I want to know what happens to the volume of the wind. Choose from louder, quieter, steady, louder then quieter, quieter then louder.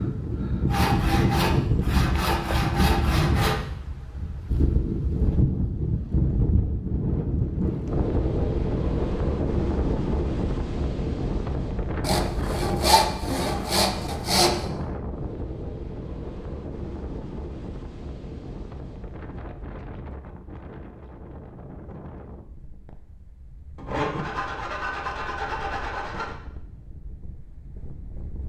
quieter.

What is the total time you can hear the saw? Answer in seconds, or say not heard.
8 s.